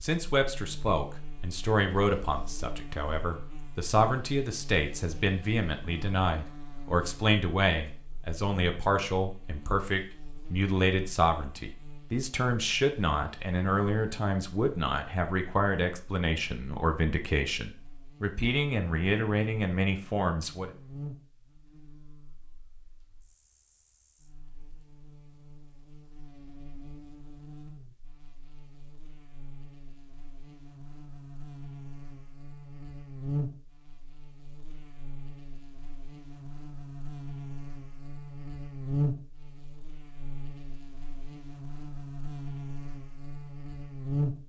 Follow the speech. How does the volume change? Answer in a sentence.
The loudness of the speech stays about the same.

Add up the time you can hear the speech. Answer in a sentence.
The speech can be heard for 21 seconds in total.